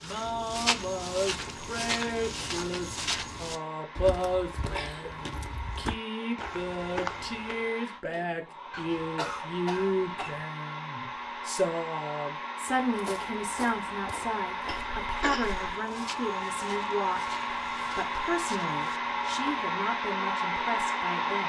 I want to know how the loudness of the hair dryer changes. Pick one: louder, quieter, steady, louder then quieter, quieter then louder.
louder.